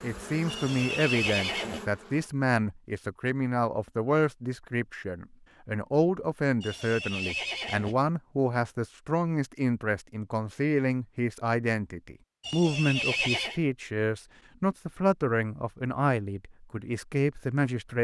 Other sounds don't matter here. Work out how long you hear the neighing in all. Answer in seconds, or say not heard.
4 s.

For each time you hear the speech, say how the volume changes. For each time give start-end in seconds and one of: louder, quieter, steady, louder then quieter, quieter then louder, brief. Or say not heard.
0.0-17.9 steady.